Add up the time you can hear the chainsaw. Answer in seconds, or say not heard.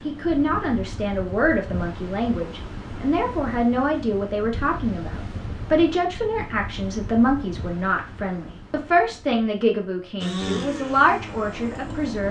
2 s.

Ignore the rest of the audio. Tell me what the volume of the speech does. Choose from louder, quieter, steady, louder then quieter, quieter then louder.
steady.